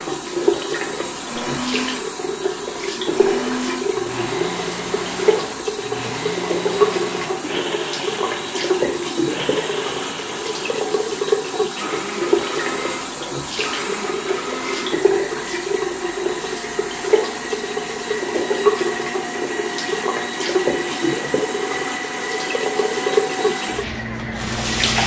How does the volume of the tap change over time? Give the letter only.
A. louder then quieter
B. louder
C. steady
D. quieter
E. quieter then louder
C.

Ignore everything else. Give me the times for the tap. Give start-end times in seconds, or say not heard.
0.0-25.0.